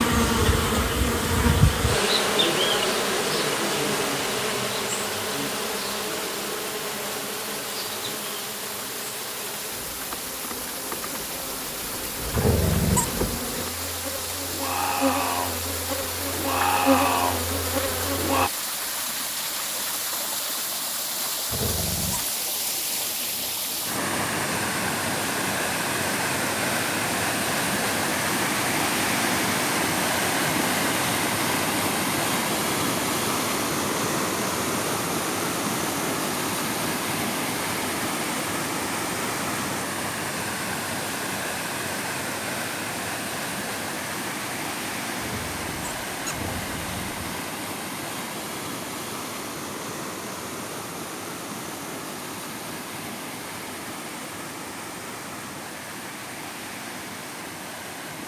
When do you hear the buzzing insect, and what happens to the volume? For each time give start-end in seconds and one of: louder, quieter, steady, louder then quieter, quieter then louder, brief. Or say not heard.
0.0-18.5 quieter then louder.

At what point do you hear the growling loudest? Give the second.
13 s.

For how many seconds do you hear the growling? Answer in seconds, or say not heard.
4 s.